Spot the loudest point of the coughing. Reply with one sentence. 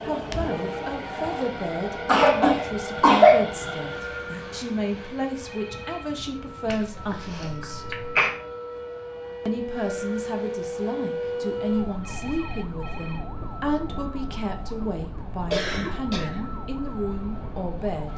The volume of the coughing peaks at 3 seconds.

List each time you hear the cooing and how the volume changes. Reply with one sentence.
You can't hear the cooing here.